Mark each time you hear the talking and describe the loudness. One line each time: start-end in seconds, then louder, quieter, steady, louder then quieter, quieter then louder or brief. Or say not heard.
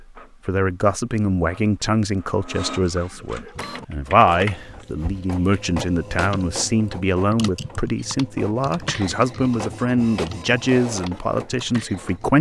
0.0-12.3 steady.